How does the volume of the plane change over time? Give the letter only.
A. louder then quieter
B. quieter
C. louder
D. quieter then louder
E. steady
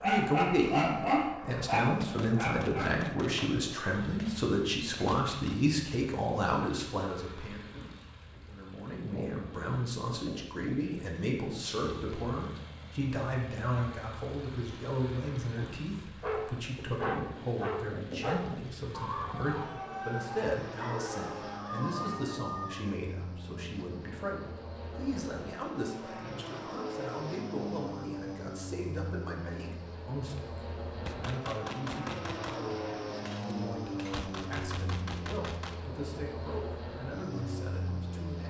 C.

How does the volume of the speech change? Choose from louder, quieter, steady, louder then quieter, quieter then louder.
quieter.